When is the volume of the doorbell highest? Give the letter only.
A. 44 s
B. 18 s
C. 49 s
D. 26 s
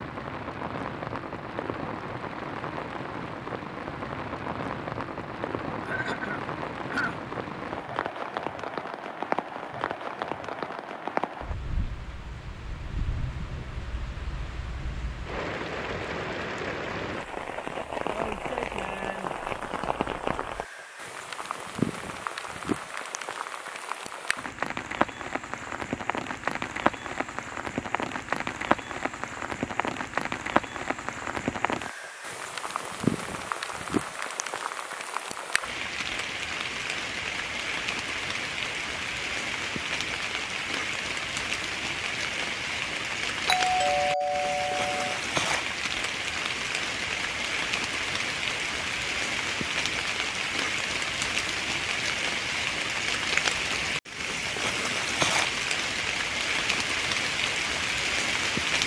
A.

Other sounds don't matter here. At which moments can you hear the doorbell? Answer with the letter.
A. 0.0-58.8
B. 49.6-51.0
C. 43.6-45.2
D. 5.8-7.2
C.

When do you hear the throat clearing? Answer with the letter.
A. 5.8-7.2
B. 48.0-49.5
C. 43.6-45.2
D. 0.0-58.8
A.